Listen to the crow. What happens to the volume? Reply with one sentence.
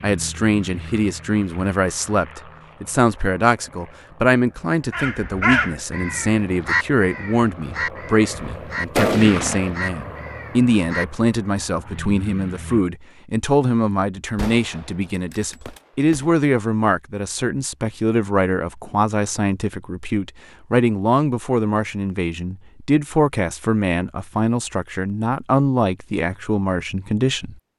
The volume of the crow goes down.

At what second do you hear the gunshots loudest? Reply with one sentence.
The volume of the gunshots peaks at 9 seconds.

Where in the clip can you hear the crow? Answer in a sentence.
The crow can be heard from 4.9 to 11.1 s.